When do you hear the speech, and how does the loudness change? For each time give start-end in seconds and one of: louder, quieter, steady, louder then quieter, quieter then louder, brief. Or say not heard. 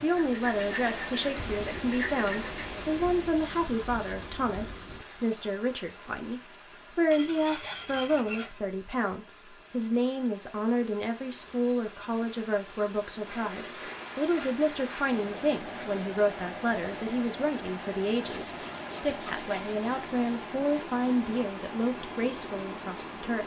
0.0-23.4 steady.